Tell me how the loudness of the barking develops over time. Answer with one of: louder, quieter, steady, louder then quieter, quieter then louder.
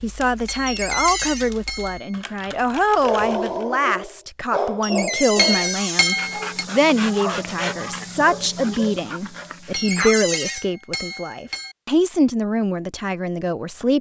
quieter.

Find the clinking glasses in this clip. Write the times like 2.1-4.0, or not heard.
0.5-2.2, 5.3-6.7, 9.7-11.8.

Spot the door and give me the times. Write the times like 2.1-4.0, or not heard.
0.7-1.5, 4.8-6.2, 9.8-10.7.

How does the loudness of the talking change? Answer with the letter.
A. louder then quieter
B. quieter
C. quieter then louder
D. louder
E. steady
E.